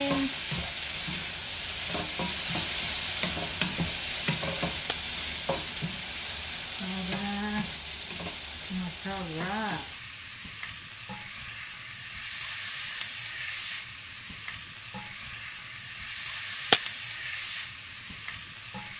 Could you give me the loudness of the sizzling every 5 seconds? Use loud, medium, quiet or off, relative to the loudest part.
loud, loud, medium, medium.